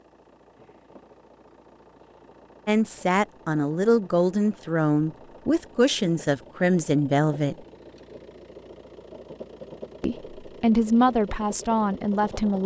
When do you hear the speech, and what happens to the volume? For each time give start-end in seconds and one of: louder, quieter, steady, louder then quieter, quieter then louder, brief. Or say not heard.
2.6-7.5 steady
10.0-12.6 brief.